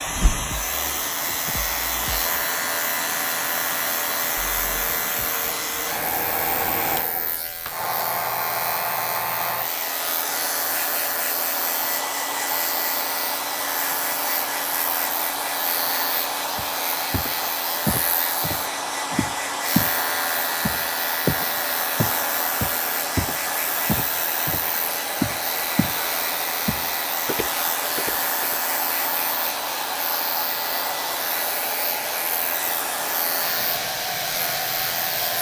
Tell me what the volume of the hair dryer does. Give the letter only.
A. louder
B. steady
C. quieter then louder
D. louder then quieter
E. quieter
B.